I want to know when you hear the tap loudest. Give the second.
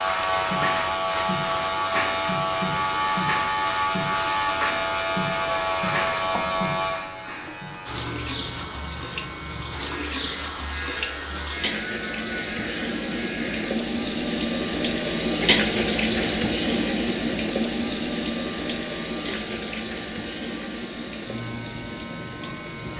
16 s.